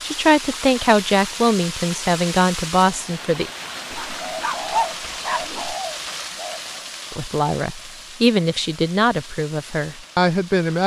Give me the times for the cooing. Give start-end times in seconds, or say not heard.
4.1-6.7.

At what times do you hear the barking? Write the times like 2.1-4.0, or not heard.
3.9-5.8.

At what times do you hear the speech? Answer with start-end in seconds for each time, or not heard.
0.0-3.5, 7.1-10.8.